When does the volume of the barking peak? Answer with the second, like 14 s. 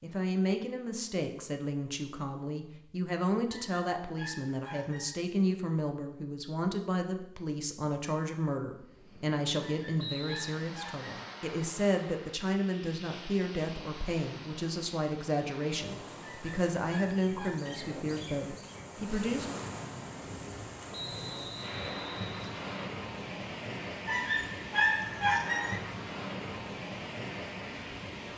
25 s.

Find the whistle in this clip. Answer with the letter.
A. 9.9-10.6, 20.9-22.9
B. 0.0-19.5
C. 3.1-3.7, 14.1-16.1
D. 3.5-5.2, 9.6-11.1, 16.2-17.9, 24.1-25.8
A.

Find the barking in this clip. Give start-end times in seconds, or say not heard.
3.5-5.2, 9.6-11.1, 16.2-17.9, 24.1-25.8.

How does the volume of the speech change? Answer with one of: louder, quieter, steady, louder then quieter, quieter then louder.
steady.